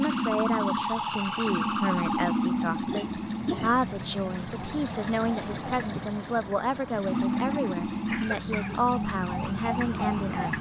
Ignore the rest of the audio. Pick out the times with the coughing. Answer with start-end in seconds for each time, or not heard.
2.6-3.8, 7.3-8.8.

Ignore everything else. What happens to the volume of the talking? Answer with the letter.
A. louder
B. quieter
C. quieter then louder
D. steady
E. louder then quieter
D.